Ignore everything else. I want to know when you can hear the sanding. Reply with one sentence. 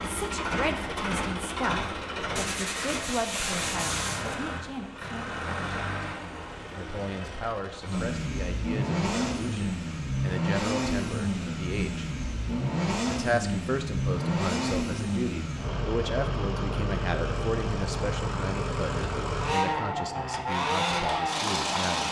You can hear the sanding from 2.4 to 4.3 s.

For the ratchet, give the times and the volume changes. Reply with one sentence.
You can't hear the ratchet here.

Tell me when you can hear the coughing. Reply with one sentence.
The coughing can't be heard in this clip.